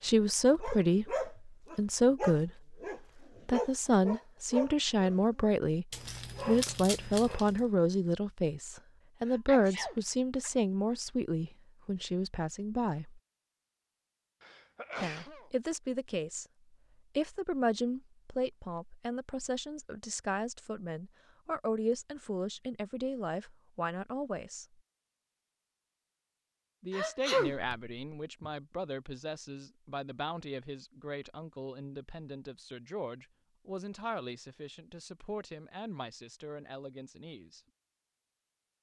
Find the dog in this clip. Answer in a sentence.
The dog can be heard from 0.6 to 7.7 s.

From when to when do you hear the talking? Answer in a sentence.
The talking can be heard from 0.0 to 2.5 s, from 3.5 to 5.8 s, from 6.5 to 13.2 s, from 15.0 to 16.4 s, from 17.1 to 24.6 s and from 26.8 to 37.6 s.